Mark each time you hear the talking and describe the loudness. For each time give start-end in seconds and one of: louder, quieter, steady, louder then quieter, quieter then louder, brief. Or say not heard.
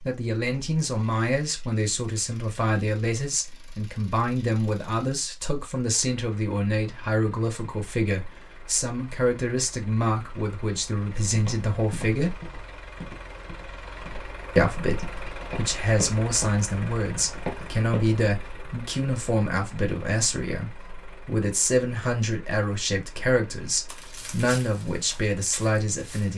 0.0-12.3 steady
14.6-26.3 steady.